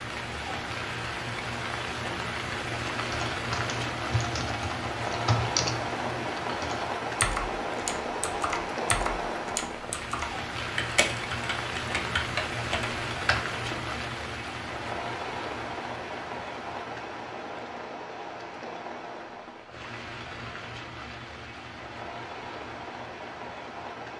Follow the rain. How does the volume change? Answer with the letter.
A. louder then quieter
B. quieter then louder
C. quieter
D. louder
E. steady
C.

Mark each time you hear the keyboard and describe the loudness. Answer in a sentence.
You can hear the keyboard from 2.5 to 13.9 s, at a steady volume.